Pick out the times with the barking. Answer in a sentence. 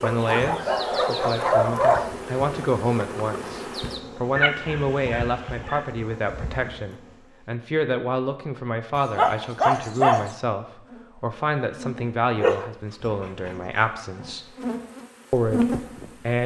The barking can be heard from 0.0 to 2.1 s, from 4.3 to 5.8 s, from 8.9 to 10.3 s and from 12.3 to 13.8 s.